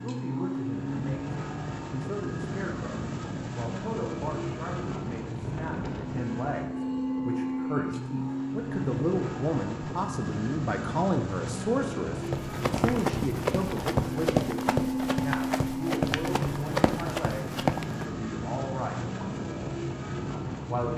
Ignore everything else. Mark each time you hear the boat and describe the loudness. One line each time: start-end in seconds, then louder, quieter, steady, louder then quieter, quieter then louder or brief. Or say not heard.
0.0-20.9 steady.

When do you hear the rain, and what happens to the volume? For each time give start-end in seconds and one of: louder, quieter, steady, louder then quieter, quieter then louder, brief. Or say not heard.
not heard.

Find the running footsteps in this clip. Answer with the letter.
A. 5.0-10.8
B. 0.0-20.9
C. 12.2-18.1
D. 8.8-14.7
C.